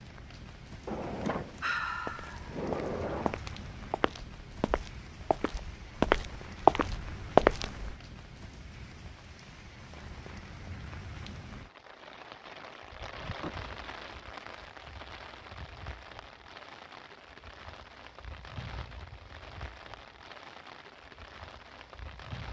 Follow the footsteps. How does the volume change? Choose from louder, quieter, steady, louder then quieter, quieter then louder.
quieter then louder.